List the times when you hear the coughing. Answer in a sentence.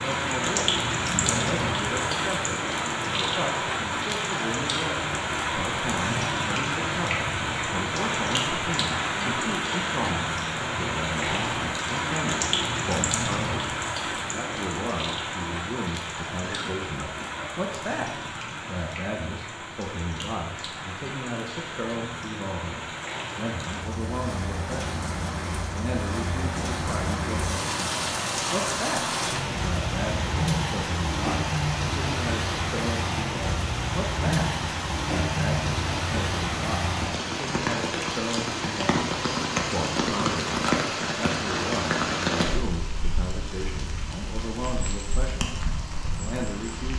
You can hear the coughing from 16.4 to 18.0 s.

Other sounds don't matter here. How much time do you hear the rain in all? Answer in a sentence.
You can hear the rain for 47 seconds altogether.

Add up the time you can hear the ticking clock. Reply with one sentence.
The ticking clock can't be heard in this clip.